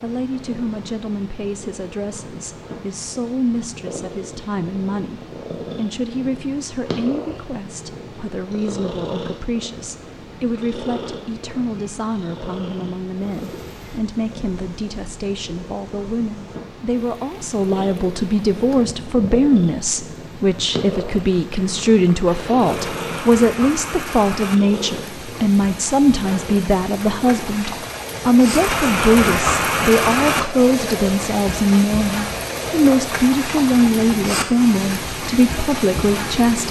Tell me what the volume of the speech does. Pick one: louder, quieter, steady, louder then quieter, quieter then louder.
louder.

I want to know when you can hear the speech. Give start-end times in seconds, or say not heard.
0.0-36.6.